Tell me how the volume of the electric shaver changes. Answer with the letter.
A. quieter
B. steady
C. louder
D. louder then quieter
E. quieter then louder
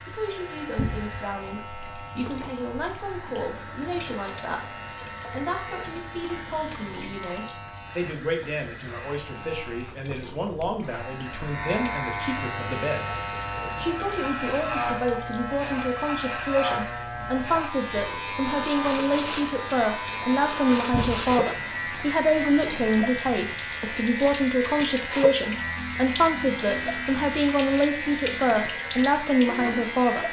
C.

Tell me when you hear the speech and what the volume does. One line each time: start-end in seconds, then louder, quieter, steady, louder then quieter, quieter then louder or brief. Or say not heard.
0.0-30.2 louder.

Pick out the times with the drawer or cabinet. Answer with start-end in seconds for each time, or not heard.
0.8-1.2, 20.9-21.4.